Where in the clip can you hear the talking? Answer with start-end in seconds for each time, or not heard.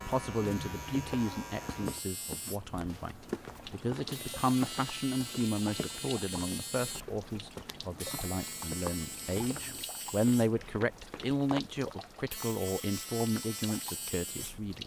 0.1-14.8.